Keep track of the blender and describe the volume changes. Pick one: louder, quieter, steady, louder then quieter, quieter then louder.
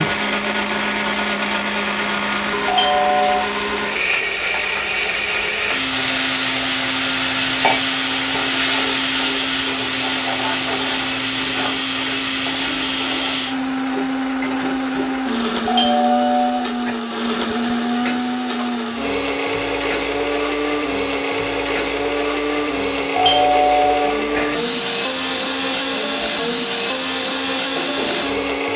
steady.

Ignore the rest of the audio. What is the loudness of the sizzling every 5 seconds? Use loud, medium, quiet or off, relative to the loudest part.
medium, loud, medium, medium, medium, medium.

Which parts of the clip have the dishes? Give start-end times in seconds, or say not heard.
not heard.